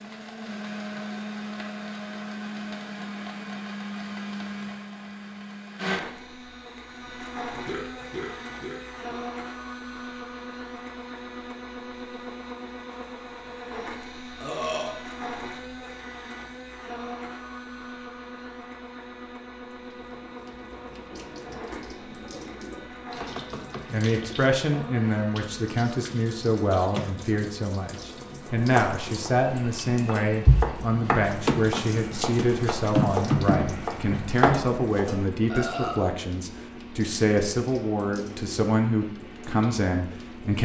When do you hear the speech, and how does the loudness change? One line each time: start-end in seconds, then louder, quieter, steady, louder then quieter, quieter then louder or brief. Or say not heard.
23.9-40.5 steady.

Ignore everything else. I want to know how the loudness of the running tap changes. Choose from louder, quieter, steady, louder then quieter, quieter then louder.
louder then quieter.